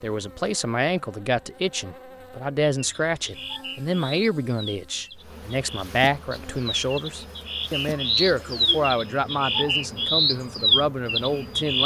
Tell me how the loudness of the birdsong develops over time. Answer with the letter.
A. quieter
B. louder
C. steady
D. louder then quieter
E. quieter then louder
B.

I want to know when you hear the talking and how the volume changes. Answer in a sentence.
The talking can be heard from 0.0 to 11.8 s, at a steady volume.